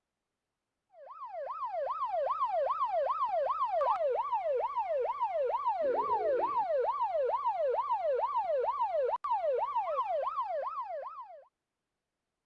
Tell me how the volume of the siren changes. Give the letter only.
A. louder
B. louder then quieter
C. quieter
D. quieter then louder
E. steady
E.